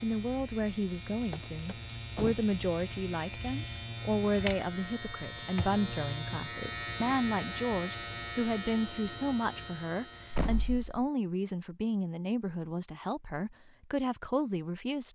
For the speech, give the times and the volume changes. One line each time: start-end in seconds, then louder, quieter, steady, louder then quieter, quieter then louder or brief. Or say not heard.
0.0-15.1 steady.